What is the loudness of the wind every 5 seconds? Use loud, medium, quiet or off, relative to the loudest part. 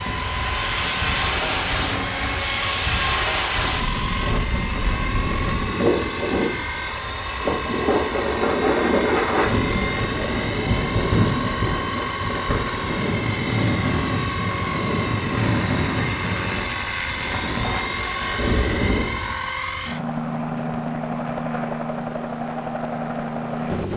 loud, loud, loud, loud, off.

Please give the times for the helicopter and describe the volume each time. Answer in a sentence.
You can hear the helicopter from 0.0 to 23.9 s, at a steady volume.